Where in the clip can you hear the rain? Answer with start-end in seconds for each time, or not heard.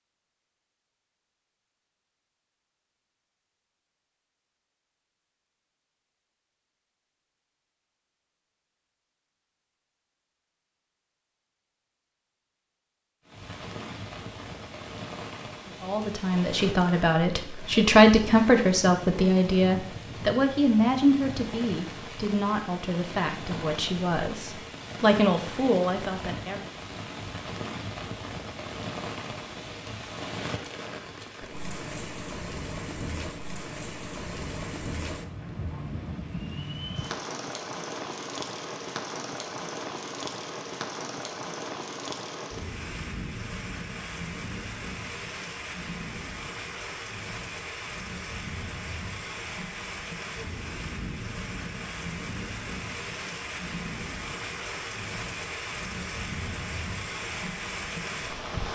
13.2-58.6.